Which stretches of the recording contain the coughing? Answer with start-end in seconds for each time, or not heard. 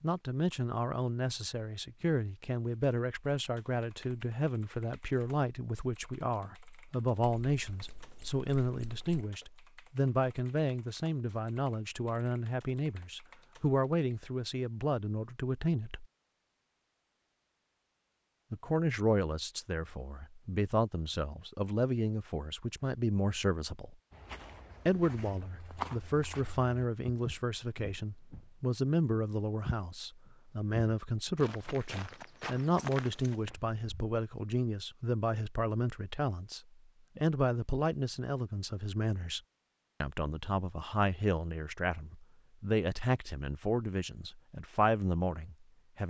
not heard.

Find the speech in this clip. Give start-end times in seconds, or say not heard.
0.0-16.1, 18.5-23.9, 24.9-39.4, 40.0-46.0.